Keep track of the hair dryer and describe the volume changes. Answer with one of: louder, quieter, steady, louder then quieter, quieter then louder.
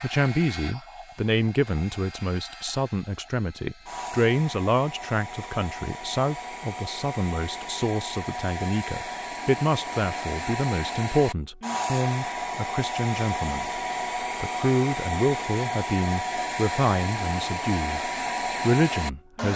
louder.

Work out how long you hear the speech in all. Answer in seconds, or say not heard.
19 s.